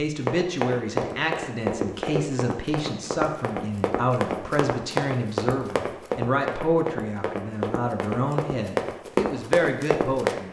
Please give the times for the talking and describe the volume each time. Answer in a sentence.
The talking can be heard from 0.0 to 10.4 s, at a steady volume.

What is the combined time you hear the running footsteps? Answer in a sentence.
The running footsteps can be heard for 10 seconds in total.